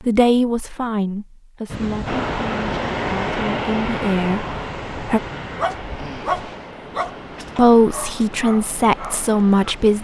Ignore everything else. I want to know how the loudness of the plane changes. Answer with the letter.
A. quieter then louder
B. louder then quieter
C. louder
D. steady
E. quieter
E.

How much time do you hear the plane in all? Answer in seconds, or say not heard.
8 s.